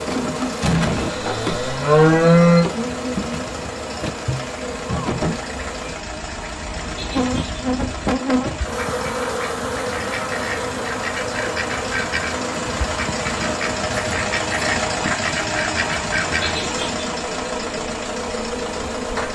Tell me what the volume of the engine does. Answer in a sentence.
The loudness of the engine goes up.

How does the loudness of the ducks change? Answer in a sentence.
The volume of the ducks goes up.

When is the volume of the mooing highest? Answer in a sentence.
The volume of the mooing peaks at 2 seconds.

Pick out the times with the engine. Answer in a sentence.
You can hear the engine from 0.0 to 19.2 s.